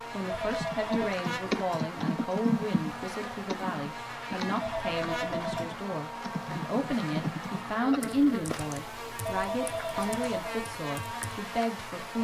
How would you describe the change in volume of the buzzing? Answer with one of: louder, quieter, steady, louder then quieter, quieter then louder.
steady.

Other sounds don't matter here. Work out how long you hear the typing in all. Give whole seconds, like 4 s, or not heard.
11 s.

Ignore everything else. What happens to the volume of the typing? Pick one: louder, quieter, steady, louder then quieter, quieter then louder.
quieter.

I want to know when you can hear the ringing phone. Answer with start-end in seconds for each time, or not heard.
0.2-1.1, 4.6-5.7, 9.2-10.4.